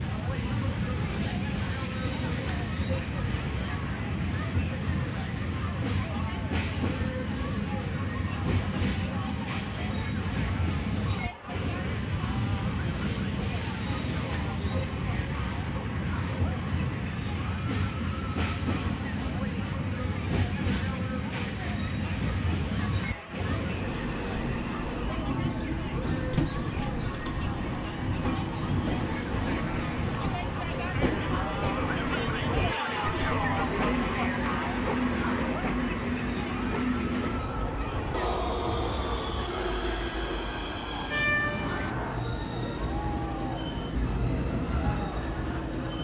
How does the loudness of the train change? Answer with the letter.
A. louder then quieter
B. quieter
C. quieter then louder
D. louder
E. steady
E.